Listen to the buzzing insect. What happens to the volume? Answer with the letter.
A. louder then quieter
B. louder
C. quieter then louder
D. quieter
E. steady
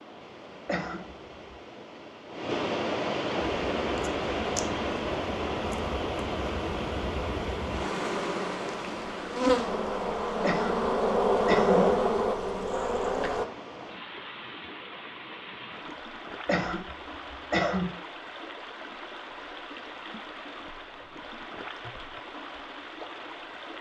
B.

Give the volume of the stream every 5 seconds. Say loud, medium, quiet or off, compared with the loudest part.
loud, loud, medium, medium, medium.